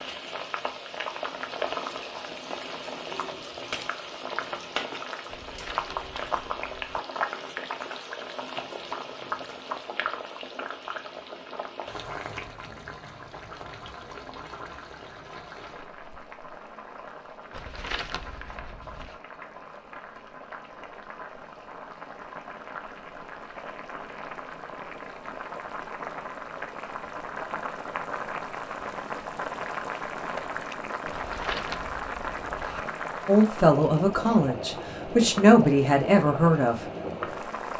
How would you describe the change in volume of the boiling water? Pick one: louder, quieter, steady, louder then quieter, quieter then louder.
quieter then louder.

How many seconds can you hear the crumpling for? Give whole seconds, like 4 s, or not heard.
5 s.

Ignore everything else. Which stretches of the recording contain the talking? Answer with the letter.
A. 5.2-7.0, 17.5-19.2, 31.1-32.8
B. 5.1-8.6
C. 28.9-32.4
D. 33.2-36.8
D.